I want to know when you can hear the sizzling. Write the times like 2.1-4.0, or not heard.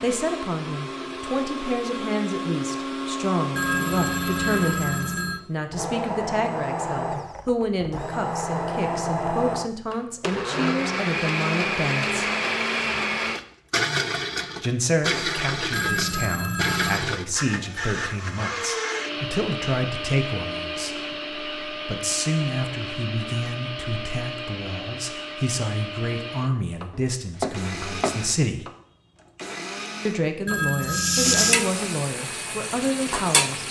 30.8-33.6.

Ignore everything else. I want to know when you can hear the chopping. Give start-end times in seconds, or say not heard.
26.9-28.2.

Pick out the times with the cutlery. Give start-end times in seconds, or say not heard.
not heard.